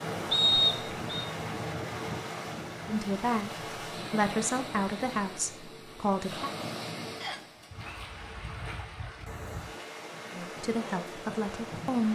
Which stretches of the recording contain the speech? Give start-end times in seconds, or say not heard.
2.9-6.5, 10.3-12.0.